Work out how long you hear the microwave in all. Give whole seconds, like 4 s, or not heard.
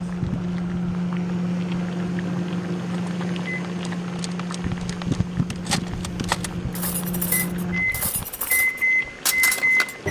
10 s.